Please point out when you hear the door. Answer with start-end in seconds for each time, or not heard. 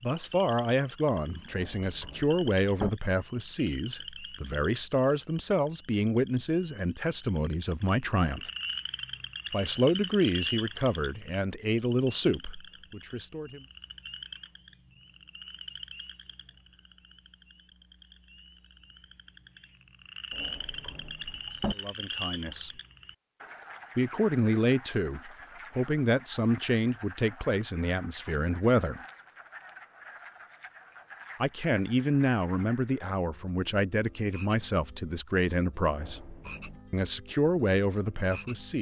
1.5-2.9, 20.3-21.8, 35.9-37.0.